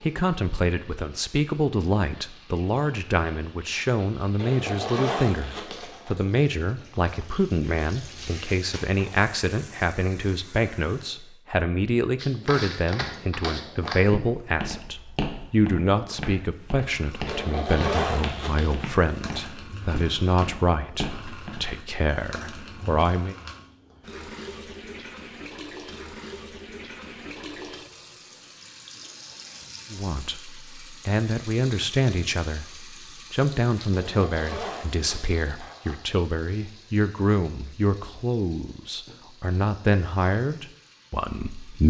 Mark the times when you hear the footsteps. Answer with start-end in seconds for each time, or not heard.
12.2-21.8.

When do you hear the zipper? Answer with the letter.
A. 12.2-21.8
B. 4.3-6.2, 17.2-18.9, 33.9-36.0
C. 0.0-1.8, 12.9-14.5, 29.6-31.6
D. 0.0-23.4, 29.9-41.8
B.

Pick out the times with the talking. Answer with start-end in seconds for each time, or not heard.
0.0-23.4, 29.9-41.8.